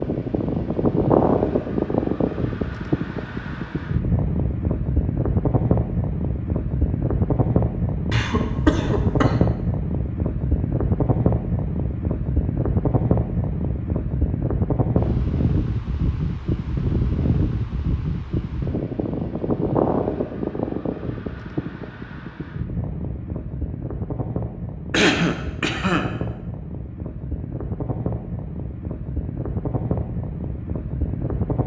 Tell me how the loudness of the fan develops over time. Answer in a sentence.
The loudness of the fan goes down.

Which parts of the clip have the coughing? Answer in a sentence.
You can hear the coughing from 8.1 to 9.4 s and from 24.9 to 26.1 s.